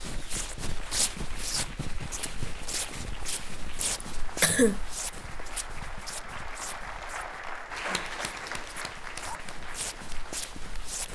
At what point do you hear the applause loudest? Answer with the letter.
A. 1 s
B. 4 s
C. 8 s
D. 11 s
C.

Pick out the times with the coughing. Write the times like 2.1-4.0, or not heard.
3.8-4.8.